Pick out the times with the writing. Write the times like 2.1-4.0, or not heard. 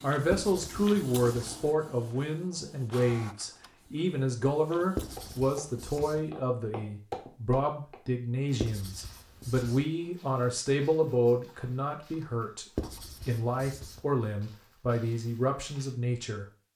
0.3-1.6, 5.0-6.2, 8.6-9.8, 12.8-14.0.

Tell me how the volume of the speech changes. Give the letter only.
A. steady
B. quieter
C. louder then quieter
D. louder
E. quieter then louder
A.